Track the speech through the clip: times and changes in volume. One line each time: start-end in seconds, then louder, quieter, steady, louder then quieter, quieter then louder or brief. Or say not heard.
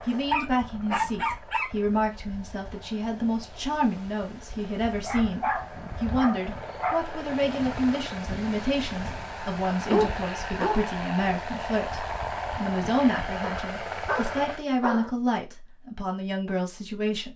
0.0-17.3 steady.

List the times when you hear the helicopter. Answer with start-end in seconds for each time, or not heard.
0.0-14.6.